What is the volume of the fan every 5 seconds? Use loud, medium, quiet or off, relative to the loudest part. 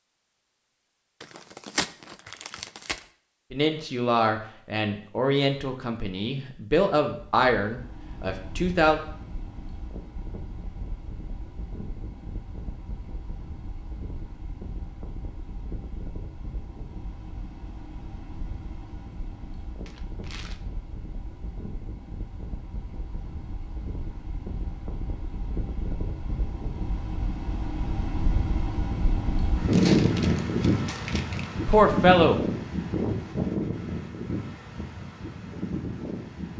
off, quiet, quiet, quiet, quiet, loud, loud, medium.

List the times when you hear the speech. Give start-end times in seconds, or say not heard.
3.5-9.0, 31.6-32.4.